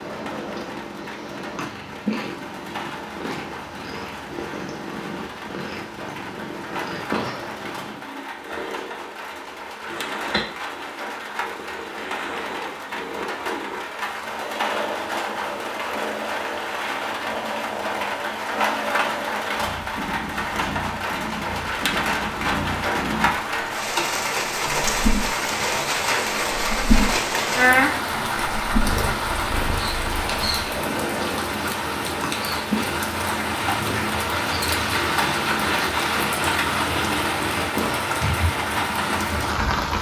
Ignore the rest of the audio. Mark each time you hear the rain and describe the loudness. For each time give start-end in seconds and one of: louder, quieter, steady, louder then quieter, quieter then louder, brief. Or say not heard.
0.0-39.9 louder.